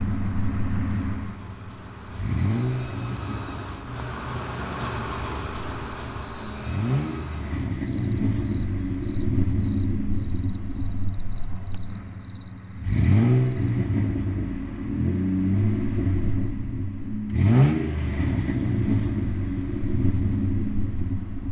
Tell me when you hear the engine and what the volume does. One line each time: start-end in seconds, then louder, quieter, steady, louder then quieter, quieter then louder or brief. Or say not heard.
0.0-21.4 louder.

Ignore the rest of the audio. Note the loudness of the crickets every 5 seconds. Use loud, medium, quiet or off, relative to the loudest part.
loud, loud, medium, off, off.